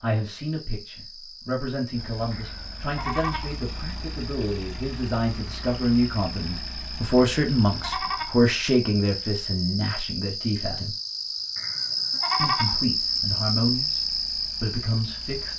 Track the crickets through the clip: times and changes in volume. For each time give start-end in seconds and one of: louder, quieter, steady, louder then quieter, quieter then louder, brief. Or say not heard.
0.0-15.5 louder.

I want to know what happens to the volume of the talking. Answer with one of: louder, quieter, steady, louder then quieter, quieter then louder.
louder then quieter.